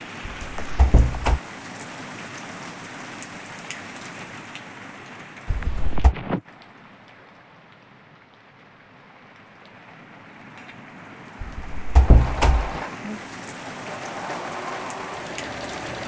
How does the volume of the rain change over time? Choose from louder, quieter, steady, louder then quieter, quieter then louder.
quieter then louder.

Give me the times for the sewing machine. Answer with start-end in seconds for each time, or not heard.
12.0-16.0.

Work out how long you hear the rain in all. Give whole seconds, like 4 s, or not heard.
16 s.